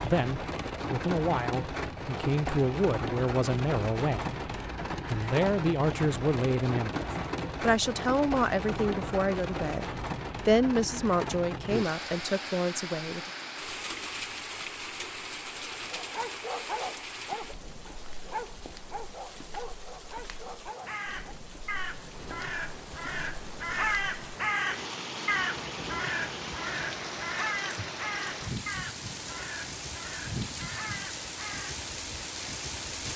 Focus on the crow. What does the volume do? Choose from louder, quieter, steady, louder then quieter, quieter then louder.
louder then quieter.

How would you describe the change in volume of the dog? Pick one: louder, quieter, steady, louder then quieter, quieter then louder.
quieter.